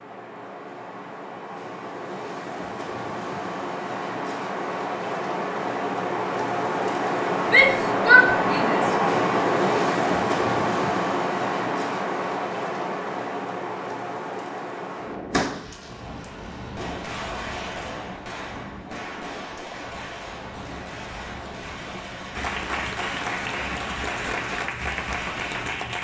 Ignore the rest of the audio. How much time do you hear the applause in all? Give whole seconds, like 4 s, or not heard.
4 s.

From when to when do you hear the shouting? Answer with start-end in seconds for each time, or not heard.
7.5-8.9.